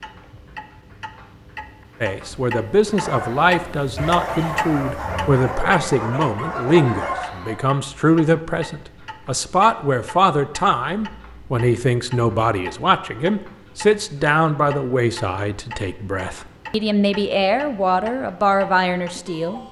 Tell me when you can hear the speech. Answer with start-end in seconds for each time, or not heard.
2.0-19.6.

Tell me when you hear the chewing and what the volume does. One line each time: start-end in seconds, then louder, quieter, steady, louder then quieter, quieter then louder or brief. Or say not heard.
not heard.